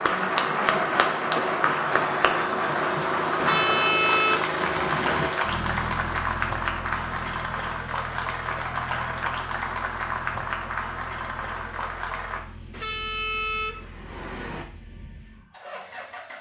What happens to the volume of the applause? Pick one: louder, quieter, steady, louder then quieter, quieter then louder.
quieter.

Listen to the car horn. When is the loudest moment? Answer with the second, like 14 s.
4 s.